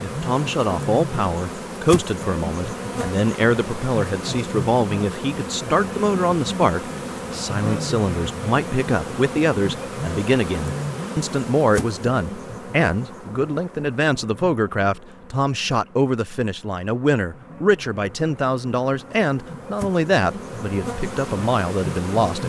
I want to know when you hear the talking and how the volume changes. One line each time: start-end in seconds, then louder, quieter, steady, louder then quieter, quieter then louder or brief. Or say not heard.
0.0-22.4 steady.